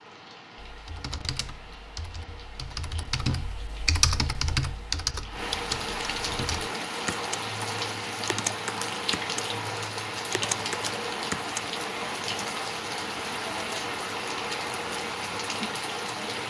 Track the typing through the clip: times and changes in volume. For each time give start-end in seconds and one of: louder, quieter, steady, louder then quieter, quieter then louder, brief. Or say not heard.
0.6-11.7 louder then quieter.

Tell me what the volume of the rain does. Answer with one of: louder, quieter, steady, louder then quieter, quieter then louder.
louder.